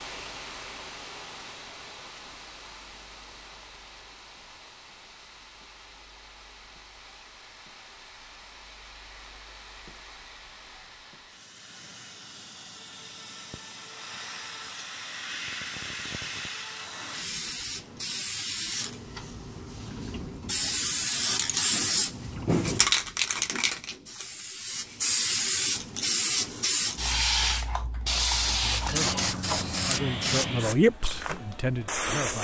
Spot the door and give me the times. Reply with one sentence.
The door can't be heard in this clip.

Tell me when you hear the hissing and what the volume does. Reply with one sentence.
The hissing can be heard from 0.0 to 32.3 s, getting louder.